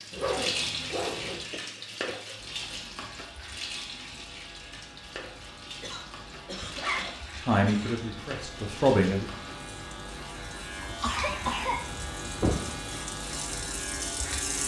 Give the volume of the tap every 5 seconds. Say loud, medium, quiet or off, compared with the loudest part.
loud, medium, loud.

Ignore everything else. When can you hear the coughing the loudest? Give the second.
12 s.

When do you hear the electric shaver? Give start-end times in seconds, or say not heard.
2.4-14.6.